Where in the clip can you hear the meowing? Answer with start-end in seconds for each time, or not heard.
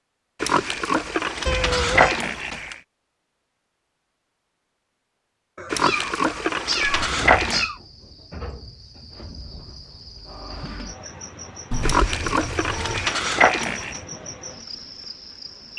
1.4-2.2, 5.5-7.8, 11.7-13.2.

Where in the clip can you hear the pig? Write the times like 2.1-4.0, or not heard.
0.4-2.8, 5.7-7.7, 11.8-14.0.